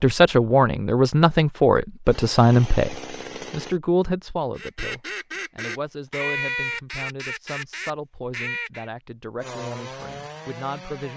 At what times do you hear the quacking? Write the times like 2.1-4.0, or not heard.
4.5-8.9.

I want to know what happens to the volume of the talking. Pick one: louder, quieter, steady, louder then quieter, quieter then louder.
quieter.